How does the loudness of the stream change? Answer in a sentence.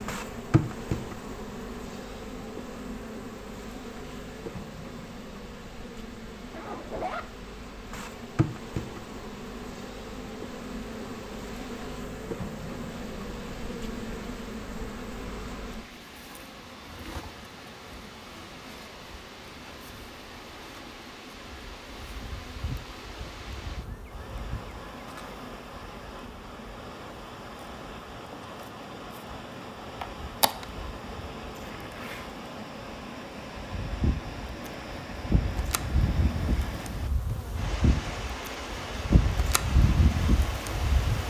The loudness of the stream goes up.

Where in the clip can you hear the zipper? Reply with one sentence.
The zipper can be heard from 6.5 to 7.2 s and from 31.6 to 32.4 s.